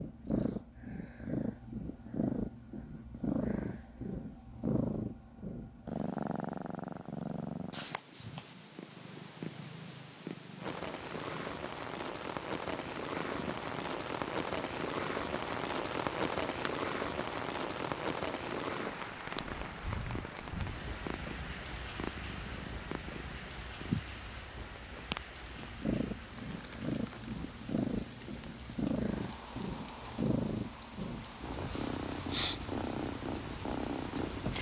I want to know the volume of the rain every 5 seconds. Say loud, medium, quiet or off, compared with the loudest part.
off, off, loud, loud, medium, quiet, quiet.